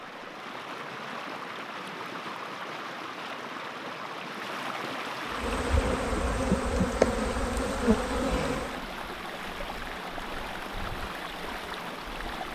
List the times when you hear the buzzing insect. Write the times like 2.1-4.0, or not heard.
5.3-8.8.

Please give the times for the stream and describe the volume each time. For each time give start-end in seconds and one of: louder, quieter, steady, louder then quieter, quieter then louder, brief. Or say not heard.
0.0-12.5 steady.